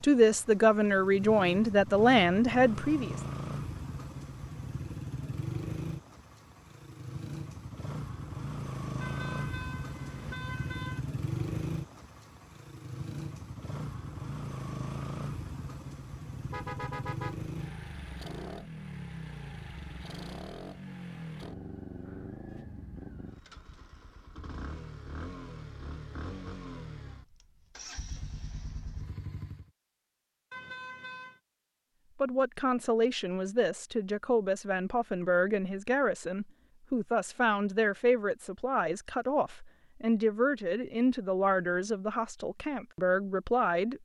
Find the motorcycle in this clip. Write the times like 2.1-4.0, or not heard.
0.0-29.7.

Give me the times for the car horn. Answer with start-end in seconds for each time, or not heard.
9.0-11.0, 16.4-17.5, 30.5-31.4.